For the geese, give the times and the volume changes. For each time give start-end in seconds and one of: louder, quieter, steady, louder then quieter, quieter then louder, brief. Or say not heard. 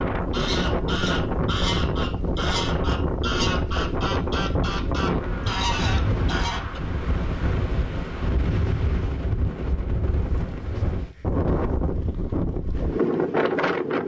0.3-6.8 steady.